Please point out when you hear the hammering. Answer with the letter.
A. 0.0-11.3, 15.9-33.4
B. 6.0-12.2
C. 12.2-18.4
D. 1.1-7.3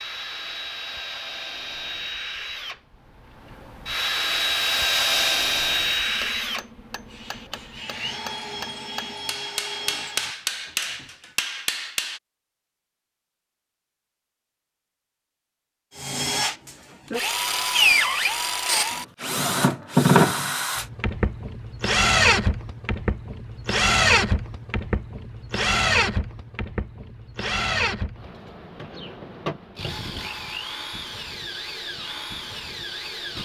B.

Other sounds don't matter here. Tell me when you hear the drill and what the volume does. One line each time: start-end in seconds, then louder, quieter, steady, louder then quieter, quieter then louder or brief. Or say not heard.
0.0-11.3 louder then quieter
15.9-33.4 quieter.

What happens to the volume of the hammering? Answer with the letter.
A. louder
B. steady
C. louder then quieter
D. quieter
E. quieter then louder
A.